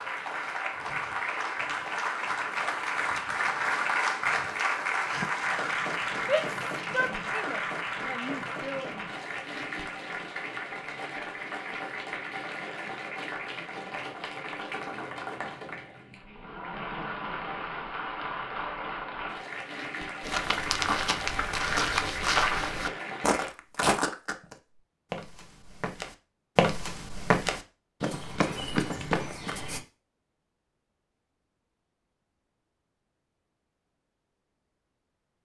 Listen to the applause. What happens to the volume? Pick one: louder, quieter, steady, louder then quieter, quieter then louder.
quieter.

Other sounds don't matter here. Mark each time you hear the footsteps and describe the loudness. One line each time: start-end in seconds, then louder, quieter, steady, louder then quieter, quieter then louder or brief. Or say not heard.
20.2-29.8 quieter then louder.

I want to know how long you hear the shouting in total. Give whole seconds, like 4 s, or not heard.
3 s.